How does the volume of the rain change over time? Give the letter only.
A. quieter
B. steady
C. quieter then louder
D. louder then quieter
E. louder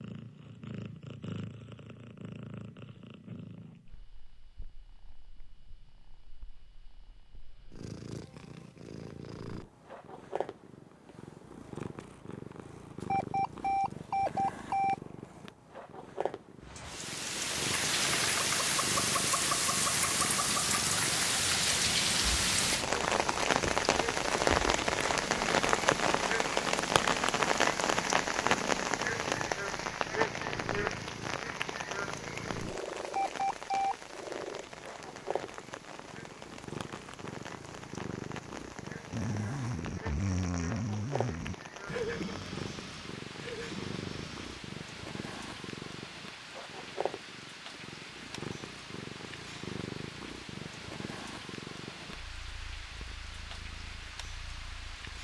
A.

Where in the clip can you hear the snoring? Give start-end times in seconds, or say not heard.
39.1-44.7.